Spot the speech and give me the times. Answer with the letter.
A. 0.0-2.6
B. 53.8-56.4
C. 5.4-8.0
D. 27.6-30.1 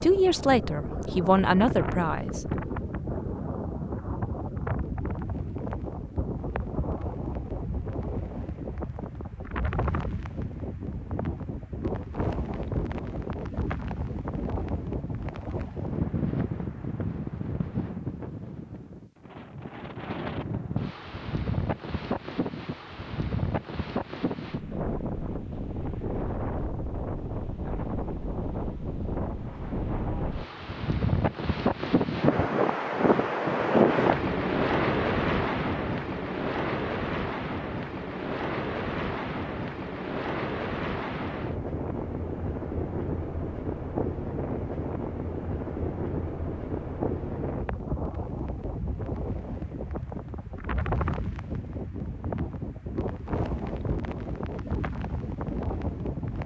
A.